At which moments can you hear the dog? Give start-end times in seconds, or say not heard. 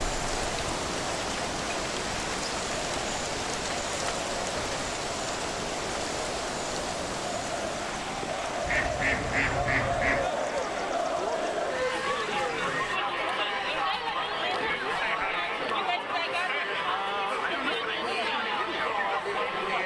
not heard.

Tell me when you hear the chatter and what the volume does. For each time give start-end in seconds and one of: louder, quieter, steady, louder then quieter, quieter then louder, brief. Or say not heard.
0.0-19.8 louder.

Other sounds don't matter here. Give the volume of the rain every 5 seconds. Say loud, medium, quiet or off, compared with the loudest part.
loud, loud, medium, off.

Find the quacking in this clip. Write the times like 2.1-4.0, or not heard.
8.6-10.3.